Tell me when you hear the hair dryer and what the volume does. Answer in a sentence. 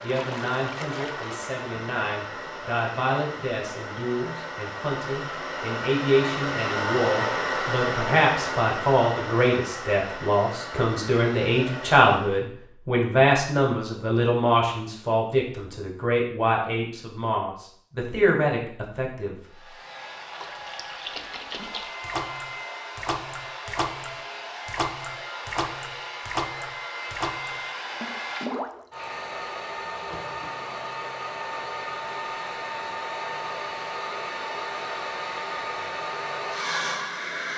You can hear the hair dryer from 0.0 to 12.4 s, getting louder then quieter; and from 19.4 to 37.5 s, getting louder.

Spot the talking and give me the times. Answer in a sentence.
The talking can be heard from 0.0 to 19.6 s.